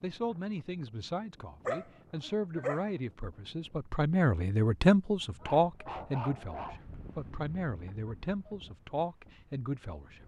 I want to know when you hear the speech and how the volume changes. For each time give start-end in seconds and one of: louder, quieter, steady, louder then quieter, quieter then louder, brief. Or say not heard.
0.0-10.2 louder then quieter.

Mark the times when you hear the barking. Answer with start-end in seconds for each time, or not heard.
1.6-2.8, 5.4-6.8.